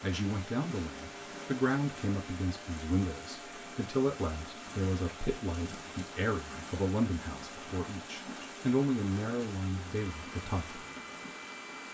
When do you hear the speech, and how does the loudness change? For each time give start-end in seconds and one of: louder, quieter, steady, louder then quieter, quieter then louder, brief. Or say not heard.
0.0-10.8 steady.